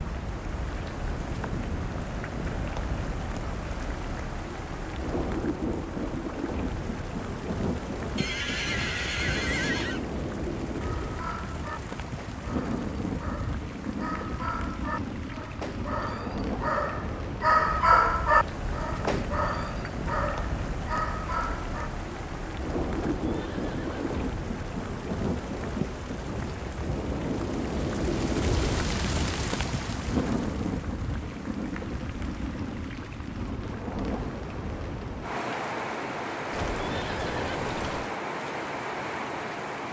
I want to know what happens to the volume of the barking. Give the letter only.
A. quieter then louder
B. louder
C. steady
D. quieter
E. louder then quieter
E.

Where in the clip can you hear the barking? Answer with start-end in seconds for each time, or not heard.
10.8-21.9.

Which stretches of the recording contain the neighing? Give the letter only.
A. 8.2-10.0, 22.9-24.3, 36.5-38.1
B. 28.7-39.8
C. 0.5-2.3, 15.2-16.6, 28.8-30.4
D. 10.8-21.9
A.